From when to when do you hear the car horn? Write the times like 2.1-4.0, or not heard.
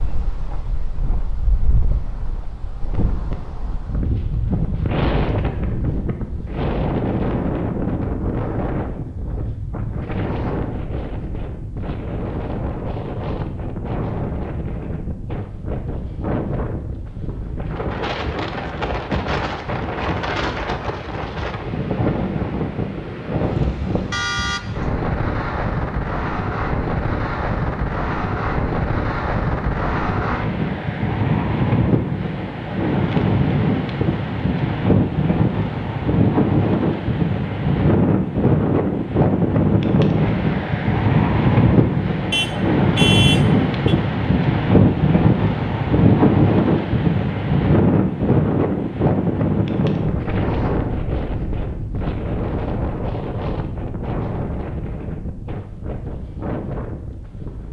24.1-24.6, 42.3-44.0.